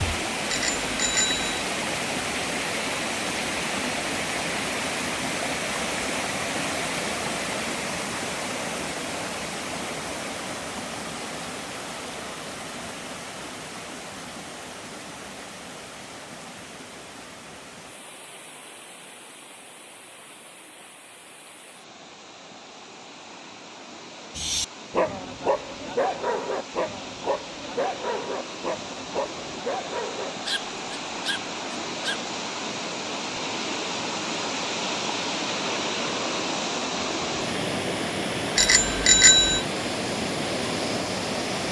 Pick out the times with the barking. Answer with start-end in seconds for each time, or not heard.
24.4-32.3.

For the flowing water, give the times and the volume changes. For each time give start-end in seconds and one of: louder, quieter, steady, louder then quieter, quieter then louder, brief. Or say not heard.
0.0-41.6 quieter then louder.